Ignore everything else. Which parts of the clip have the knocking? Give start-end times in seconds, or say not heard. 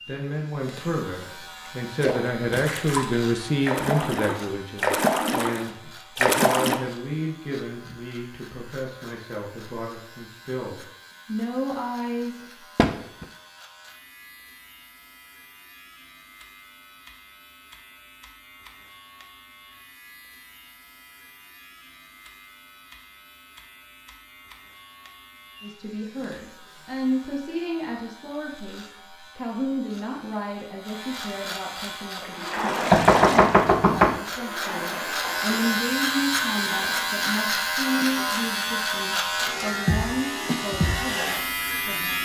12.8-13.2, 32.9-34.2.